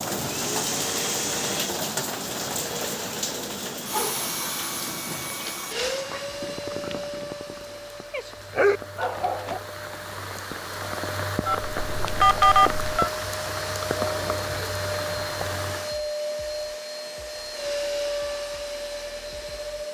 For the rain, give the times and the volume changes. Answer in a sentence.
You can hear the rain from 0.0 to 15.9 s, getting quieter then louder.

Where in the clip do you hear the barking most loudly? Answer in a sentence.
The loudest moment of the barking is at 9 seconds.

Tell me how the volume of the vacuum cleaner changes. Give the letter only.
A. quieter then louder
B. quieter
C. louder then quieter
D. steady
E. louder
A.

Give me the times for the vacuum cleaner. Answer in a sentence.
You can hear the vacuum cleaner from 0.1 to 19.8 s.